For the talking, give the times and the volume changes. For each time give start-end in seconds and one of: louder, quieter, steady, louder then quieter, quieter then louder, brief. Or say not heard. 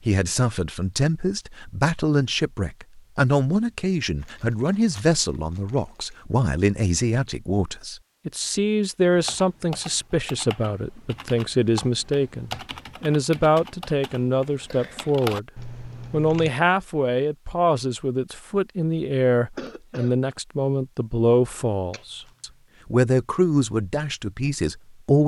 0.1-15.5 steady
16.1-25.2 steady.